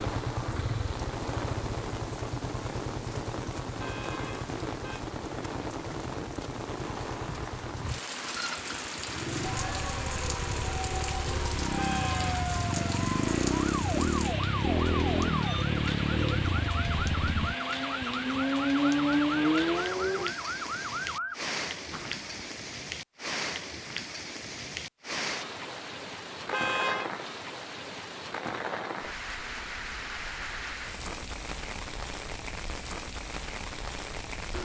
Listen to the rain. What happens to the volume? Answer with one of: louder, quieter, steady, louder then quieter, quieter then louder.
steady.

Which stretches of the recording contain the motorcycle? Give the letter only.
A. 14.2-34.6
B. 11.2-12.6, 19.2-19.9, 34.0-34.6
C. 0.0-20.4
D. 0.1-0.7
C.